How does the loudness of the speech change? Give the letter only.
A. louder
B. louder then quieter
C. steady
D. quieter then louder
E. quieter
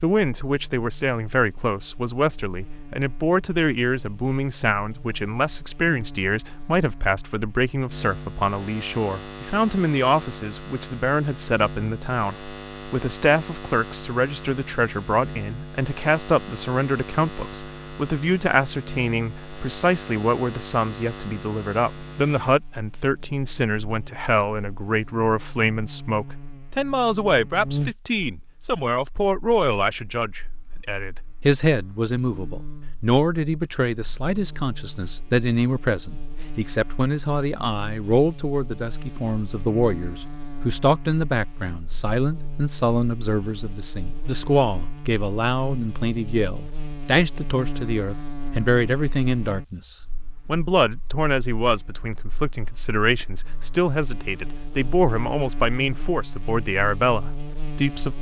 C.